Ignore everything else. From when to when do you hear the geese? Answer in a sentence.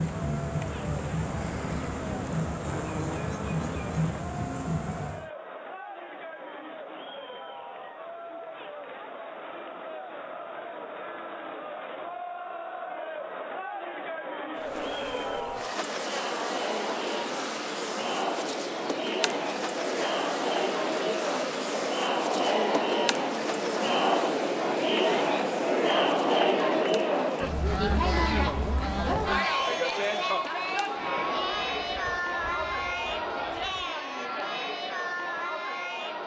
You can hear the geese from 27.4 to 29.8 s.